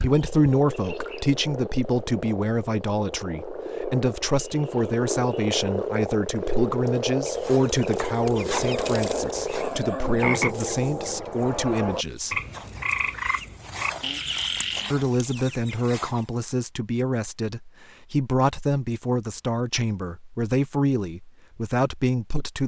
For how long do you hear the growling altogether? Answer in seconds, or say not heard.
2 s.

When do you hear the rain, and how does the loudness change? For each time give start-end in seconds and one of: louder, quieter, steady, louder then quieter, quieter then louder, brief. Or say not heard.
not heard.